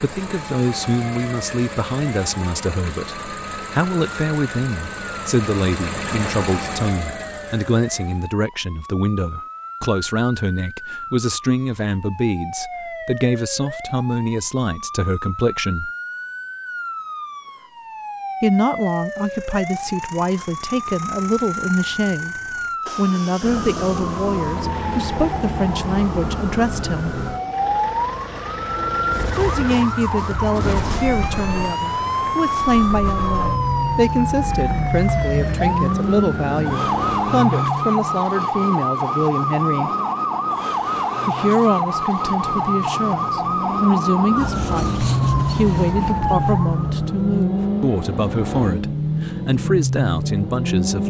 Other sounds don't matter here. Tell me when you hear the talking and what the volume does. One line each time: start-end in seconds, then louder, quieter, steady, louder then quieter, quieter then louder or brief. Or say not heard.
0.0-15.9 steady
18.4-27.1 steady
29.4-39.9 steady
41.2-51.0 steady.